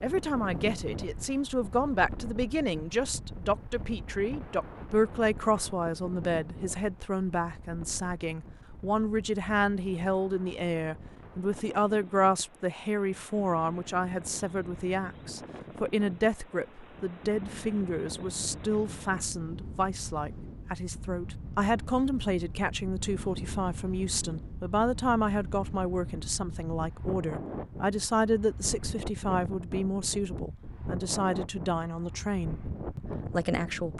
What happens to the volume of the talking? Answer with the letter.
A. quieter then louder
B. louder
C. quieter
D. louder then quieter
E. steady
E.